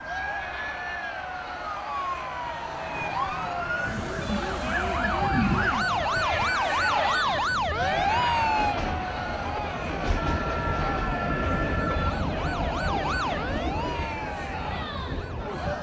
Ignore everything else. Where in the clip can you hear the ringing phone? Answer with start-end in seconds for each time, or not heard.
10.2-12.1.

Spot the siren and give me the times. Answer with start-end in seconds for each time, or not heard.
0.0-8.8, 11.9-15.5.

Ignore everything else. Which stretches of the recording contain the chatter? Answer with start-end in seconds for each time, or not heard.
0.0-15.7.